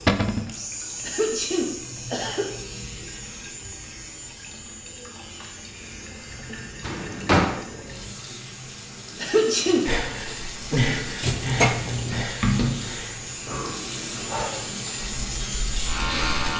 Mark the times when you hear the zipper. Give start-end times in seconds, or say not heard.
not heard.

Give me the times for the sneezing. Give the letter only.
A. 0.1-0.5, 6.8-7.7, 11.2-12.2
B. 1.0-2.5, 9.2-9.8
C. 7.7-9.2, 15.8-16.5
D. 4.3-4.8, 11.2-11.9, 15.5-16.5
B.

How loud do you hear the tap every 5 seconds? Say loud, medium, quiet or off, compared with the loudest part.
quiet, medium, loud, loud.